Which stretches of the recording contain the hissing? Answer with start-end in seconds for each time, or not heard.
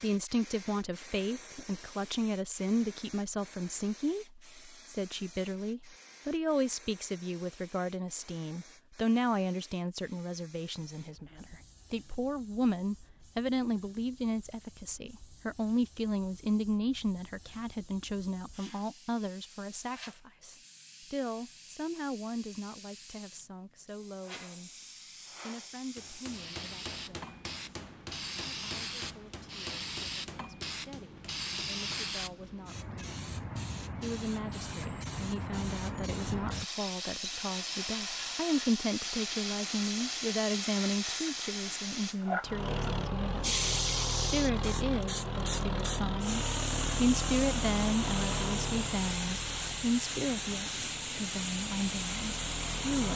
0.0-53.1.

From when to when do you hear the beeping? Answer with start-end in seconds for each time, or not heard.
not heard.